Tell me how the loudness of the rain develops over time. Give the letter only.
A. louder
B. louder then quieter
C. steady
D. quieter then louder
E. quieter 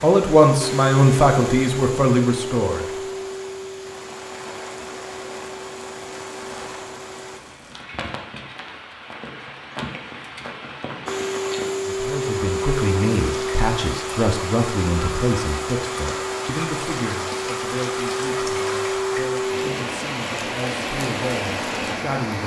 A.